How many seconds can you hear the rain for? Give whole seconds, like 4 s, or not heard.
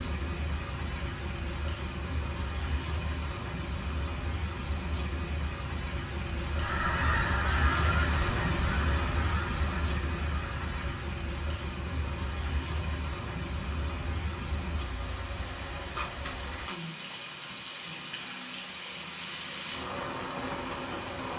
21 s.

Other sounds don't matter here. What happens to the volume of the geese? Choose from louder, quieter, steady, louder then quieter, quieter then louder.
quieter.